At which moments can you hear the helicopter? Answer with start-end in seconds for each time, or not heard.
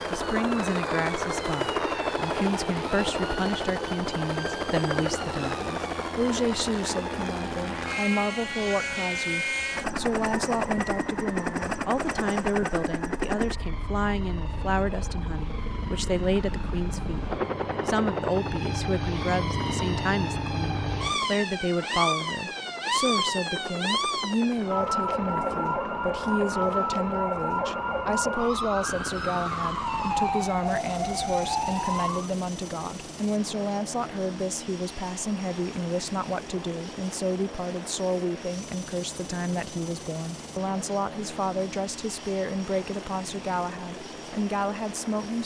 0.0-45.4.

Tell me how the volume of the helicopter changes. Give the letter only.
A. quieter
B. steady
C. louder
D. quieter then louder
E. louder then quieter
A.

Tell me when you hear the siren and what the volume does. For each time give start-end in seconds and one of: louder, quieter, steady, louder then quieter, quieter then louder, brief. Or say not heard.
0.0-32.3 louder.